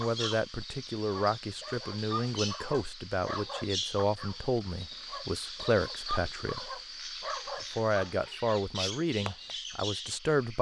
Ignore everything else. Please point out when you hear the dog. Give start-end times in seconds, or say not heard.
0.0-9.6.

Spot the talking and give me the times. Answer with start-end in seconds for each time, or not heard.
0.0-6.7, 7.6-10.5.